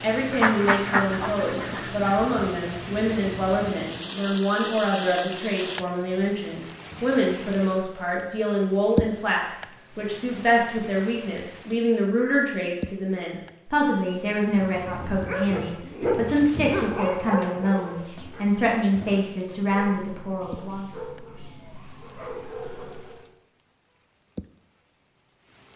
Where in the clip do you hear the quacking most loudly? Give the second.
1 s.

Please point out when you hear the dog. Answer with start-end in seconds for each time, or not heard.
14.3-23.3.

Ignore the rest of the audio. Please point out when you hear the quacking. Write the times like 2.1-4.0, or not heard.
0.3-2.1.